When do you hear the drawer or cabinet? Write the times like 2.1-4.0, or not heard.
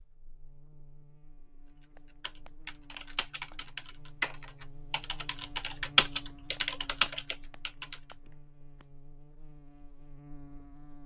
not heard.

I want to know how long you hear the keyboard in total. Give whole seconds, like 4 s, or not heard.
6 s.